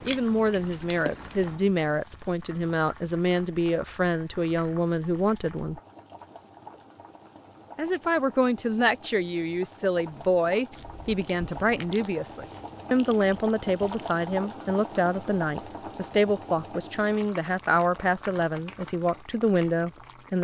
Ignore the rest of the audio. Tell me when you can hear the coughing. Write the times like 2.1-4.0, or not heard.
not heard.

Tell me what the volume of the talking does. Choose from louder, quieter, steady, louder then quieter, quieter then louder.
steady.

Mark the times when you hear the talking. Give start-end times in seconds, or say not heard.
0.0-5.8, 7.8-20.4.